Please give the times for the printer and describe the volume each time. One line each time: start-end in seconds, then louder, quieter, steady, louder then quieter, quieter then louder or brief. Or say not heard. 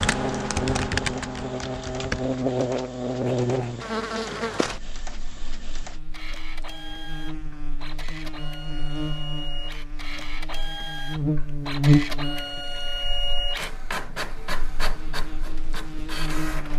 0.2-16.7 louder.